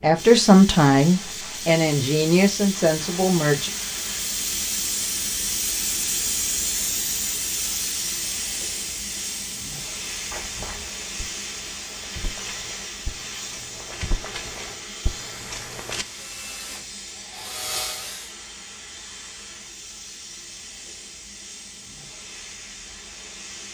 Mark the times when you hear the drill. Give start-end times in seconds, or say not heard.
16.1-18.3.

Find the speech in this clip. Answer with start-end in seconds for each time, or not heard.
0.0-3.7.